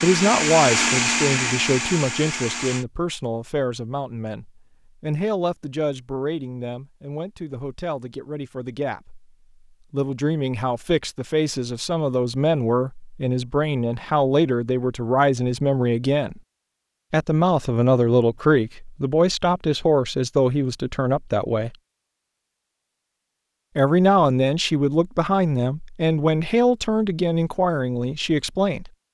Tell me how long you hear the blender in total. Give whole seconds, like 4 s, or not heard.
3 s.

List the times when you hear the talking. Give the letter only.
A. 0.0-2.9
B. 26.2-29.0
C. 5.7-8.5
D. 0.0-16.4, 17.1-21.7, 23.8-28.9
D.